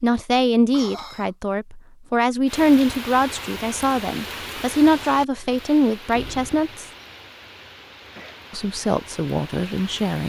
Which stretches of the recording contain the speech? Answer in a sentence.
The speech can be heard from 0.0 to 6.8 s and from 8.5 to 10.2 s.